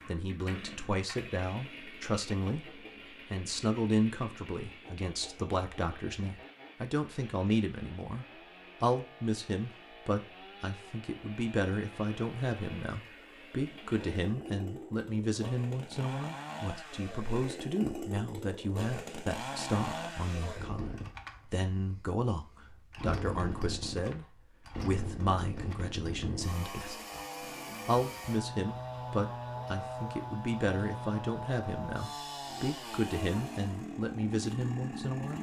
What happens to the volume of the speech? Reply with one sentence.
The loudness of the speech stays about the same.